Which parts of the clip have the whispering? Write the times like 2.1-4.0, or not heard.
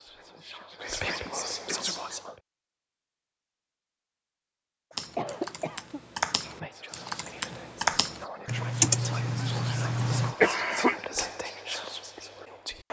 0.0-2.4, 6.2-12.8.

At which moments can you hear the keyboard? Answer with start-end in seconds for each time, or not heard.
4.9-10.3.